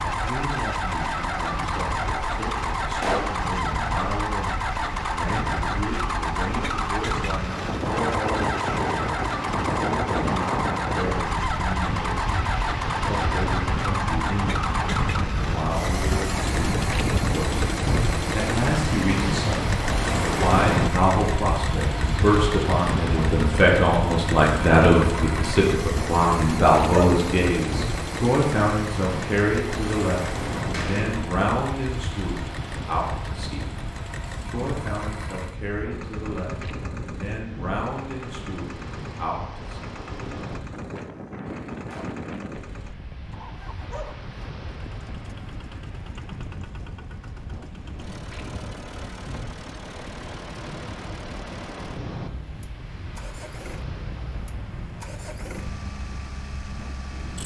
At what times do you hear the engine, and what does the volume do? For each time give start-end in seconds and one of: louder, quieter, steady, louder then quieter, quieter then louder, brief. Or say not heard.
0.0-57.4 quieter.